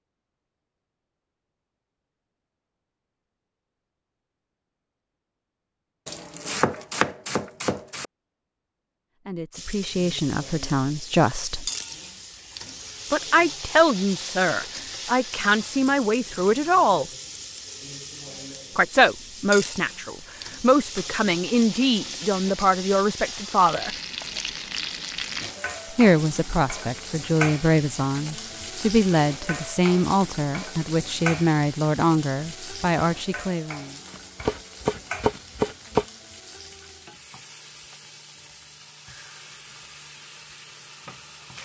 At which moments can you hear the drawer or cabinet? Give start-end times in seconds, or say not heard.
not heard.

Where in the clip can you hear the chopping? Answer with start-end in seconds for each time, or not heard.
6.0-8.1, 34.1-36.0.